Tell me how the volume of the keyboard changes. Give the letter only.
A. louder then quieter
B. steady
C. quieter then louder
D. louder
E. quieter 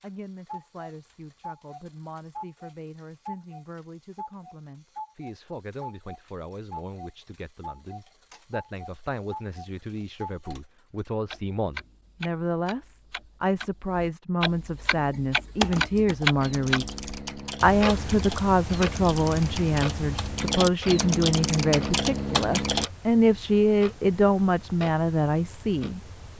D.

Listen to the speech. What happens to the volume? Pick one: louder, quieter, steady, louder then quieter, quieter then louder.
louder.